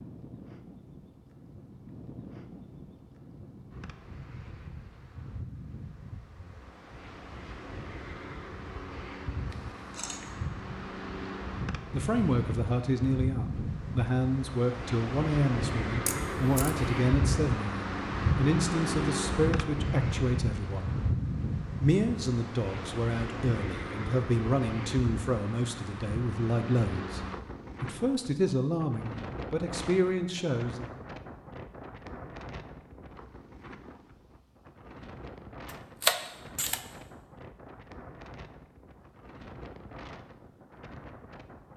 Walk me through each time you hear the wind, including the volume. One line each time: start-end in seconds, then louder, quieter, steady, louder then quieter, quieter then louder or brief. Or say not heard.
0.0-41.7 louder then quieter.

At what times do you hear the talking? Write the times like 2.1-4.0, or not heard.
11.9-20.9, 21.8-27.2, 27.8-31.0.